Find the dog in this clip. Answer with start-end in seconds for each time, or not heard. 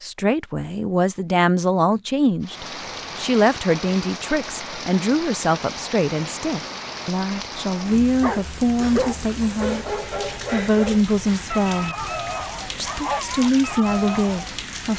8.2-14.6.